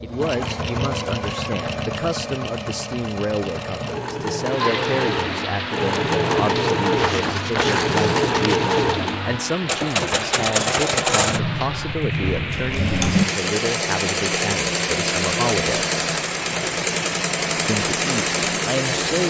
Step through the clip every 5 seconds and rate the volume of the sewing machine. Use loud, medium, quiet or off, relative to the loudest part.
medium, loud, loud, loud.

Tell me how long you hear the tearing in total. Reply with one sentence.
The tearing can be heard for 2 seconds in total.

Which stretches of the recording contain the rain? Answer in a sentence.
You can hear the rain from 4.5 to 19.2 s.